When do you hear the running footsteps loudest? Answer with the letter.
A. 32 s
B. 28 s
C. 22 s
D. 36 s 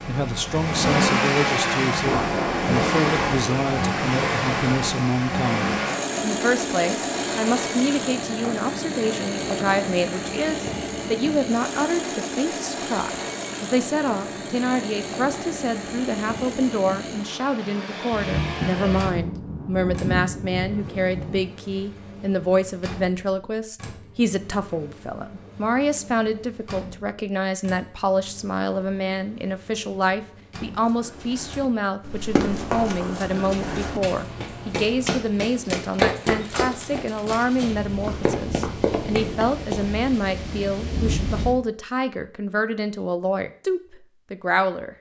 D.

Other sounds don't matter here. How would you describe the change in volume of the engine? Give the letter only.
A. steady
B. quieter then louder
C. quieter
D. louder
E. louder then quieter
C.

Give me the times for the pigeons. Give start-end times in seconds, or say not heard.
not heard.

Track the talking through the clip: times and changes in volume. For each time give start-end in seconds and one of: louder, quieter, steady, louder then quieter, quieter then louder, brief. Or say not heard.
0.1-44.9 steady.